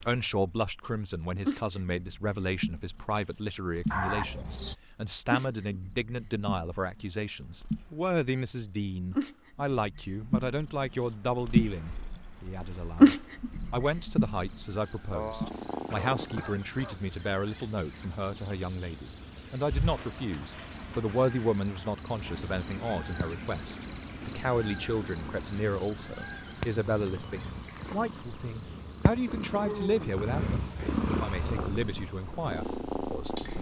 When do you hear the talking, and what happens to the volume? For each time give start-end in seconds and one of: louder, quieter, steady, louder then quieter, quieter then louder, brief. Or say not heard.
0.1-33.5 steady.